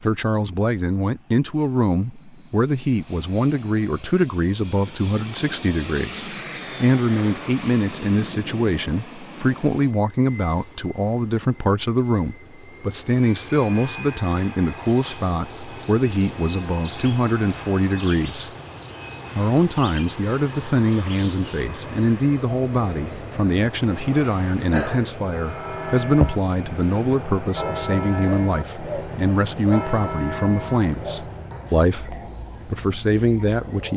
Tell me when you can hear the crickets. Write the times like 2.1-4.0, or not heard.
14.8-33.9.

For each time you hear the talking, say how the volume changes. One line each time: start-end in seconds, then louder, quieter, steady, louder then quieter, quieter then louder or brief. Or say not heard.
0.0-18.5 steady
19.4-33.9 steady.